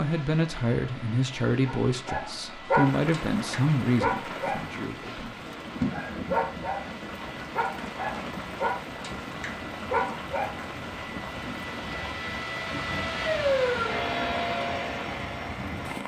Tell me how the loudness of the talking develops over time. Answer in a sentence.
The loudness of the talking goes down.